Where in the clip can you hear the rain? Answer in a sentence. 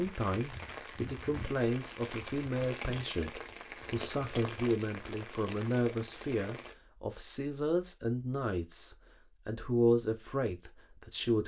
The rain can be heard from 0.0 to 6.8 s.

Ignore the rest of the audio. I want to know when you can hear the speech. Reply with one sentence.
The speech can be heard from 0.0 to 11.4 s.